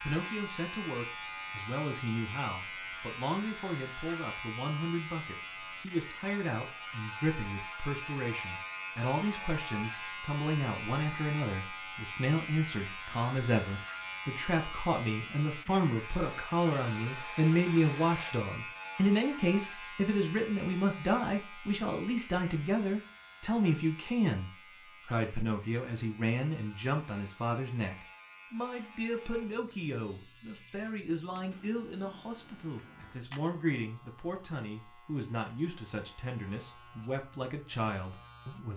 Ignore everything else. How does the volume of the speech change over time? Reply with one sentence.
The volume of the speech goes up, then down.